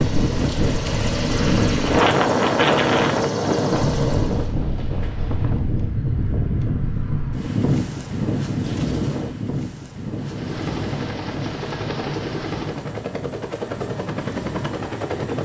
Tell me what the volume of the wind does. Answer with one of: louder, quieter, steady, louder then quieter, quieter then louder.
quieter.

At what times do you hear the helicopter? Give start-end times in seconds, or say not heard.
0.0-4.5, 10.2-15.3.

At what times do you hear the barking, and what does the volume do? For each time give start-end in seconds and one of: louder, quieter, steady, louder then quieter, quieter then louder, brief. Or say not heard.
not heard.